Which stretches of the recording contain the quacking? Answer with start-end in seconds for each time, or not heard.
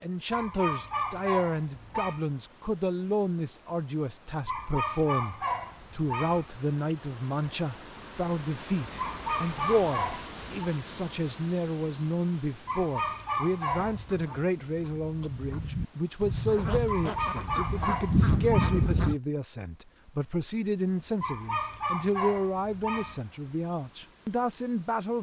13.7-19.1.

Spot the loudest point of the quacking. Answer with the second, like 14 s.
18 s.